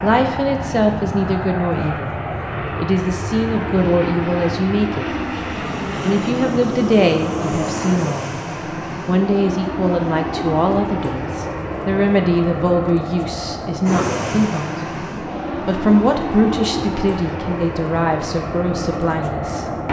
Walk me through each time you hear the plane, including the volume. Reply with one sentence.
The plane can be heard from 0.0 to 19.8 s, at a steady volume.